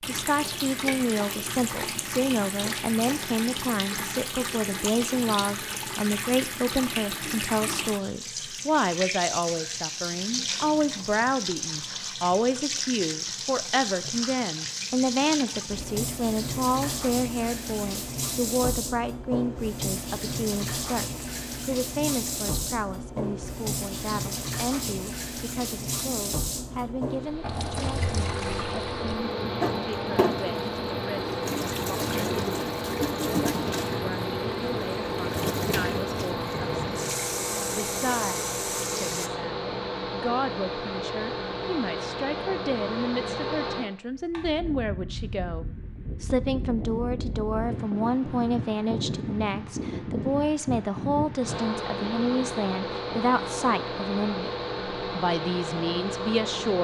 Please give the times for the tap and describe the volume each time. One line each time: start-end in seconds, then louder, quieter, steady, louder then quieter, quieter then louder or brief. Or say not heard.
0.0-39.3 steady.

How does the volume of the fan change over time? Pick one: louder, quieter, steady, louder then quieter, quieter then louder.
steady.